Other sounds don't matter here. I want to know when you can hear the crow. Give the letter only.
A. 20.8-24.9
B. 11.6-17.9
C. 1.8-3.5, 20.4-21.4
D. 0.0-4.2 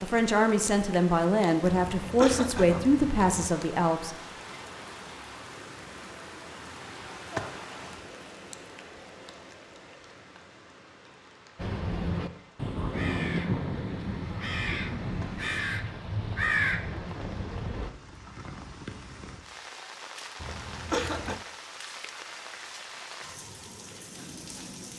B.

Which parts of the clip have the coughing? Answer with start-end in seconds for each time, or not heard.
1.8-3.5, 20.4-21.4.